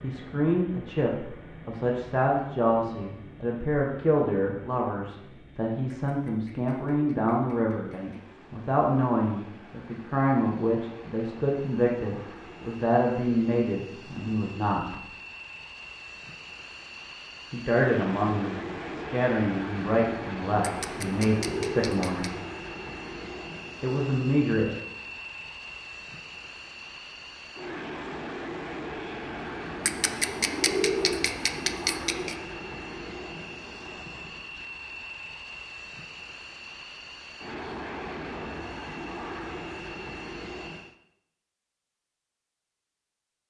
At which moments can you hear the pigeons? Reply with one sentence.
The pigeons can be heard from 5.9 to 8.2 s, from 20.6 to 22.3 s and from 29.9 to 32.4 s.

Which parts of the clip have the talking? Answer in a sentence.
The talking can be heard from 0.0 to 14.9 s, from 17.5 to 22.2 s and from 23.8 to 24.8 s.